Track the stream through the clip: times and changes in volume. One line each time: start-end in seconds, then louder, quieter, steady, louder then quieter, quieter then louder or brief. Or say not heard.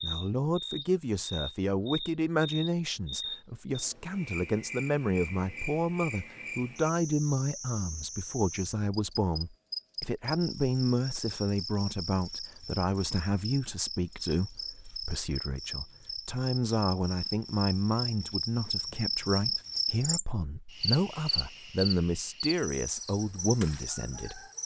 not heard.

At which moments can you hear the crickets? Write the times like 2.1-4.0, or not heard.
0.0-24.6.